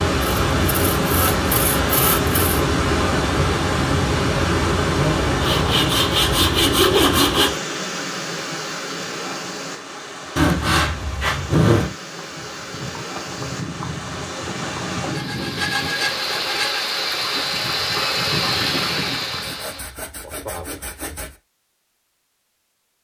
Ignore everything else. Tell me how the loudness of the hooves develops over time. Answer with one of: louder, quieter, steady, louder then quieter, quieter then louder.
quieter then louder.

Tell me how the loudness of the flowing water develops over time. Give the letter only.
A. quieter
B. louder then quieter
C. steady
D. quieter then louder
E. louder
D.